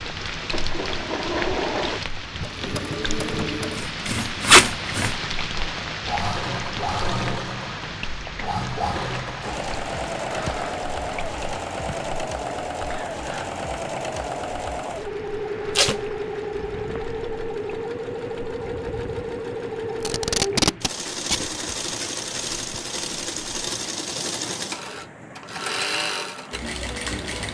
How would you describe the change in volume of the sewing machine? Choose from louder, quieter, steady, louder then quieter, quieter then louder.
steady.